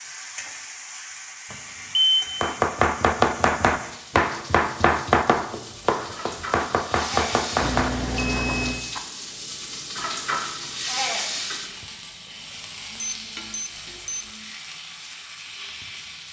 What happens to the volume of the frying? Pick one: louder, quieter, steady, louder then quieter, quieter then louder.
louder then quieter.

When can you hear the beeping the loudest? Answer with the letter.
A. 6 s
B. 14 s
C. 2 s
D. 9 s
C.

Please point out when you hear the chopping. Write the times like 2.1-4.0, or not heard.
2.4-9.0.